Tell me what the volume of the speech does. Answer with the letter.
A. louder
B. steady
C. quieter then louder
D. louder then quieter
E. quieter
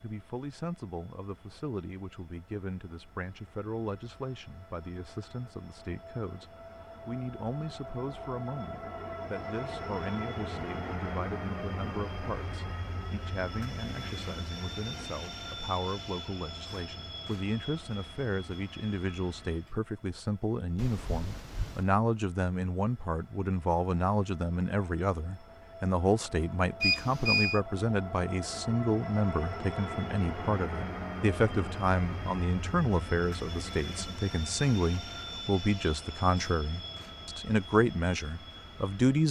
A.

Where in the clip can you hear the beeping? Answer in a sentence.
You can hear the beeping from 26.8 to 27.6 s.